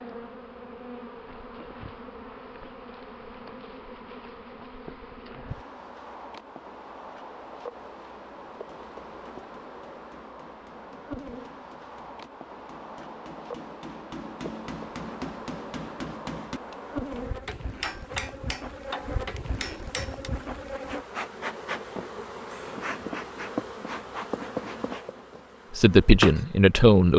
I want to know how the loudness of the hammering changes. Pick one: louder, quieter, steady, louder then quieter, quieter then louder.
louder.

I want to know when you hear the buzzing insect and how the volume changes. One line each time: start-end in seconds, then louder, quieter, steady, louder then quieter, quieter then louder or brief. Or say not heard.
0.0-27.1 louder.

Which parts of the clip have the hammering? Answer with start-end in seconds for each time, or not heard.
8.4-20.3.